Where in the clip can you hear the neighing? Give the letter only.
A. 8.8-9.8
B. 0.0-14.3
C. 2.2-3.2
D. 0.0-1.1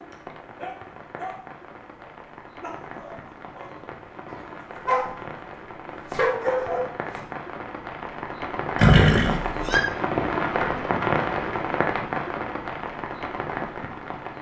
A.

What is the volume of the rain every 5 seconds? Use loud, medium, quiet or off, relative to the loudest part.
quiet, medium, loud.